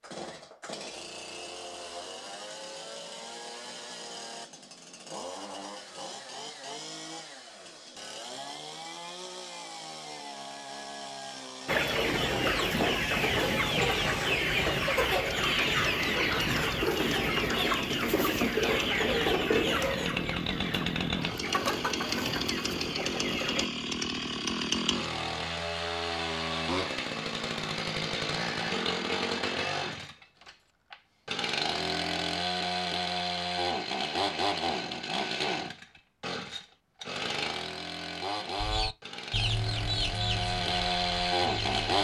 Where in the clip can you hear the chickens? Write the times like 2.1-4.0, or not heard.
11.7-23.6, 38.5-41.9.